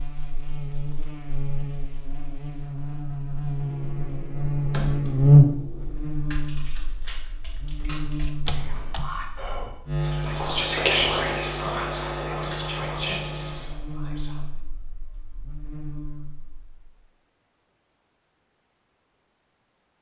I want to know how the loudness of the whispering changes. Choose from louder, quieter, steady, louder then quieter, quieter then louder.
louder then quieter.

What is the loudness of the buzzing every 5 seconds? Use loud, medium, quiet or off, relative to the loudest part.
medium, loud, medium, quiet.